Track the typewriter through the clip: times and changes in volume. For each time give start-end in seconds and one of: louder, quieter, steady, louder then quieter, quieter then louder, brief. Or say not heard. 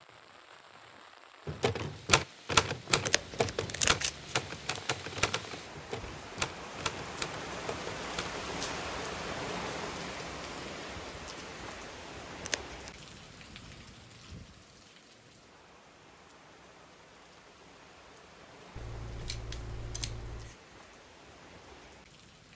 1.4-8.8 quieter.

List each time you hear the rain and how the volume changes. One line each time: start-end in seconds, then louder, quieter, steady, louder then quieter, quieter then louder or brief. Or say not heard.
0.0-22.5 louder then quieter.